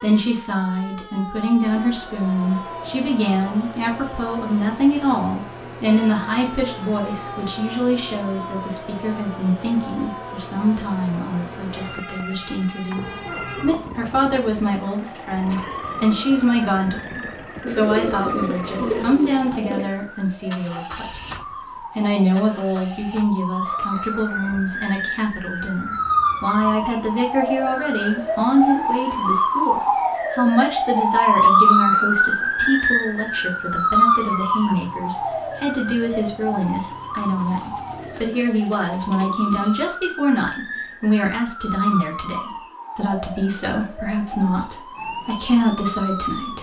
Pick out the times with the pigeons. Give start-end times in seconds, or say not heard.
17.6-19.9, 37.4-40.0.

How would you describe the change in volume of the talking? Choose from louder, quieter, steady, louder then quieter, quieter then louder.
steady.